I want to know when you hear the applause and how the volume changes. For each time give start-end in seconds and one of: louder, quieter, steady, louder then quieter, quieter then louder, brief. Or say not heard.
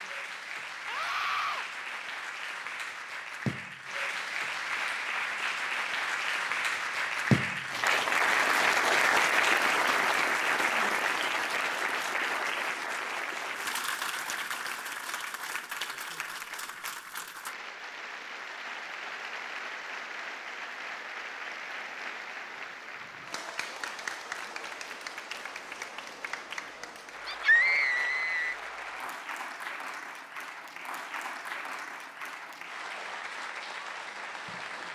0.0-34.9 louder then quieter.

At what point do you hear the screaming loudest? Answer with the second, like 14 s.
28 s.